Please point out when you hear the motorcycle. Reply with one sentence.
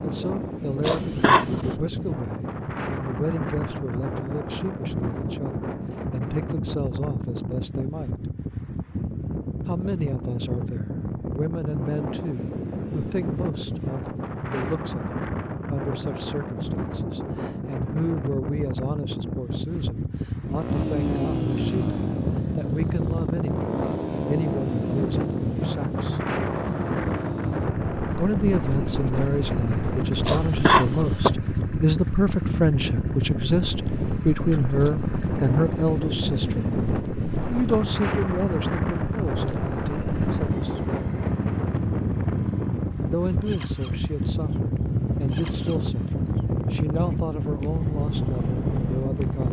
The motorcycle can be heard from 20.4 to 49.4 s.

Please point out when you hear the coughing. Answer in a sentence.
The coughing can be heard from 0.8 to 1.8 s and from 30.2 to 31.3 s.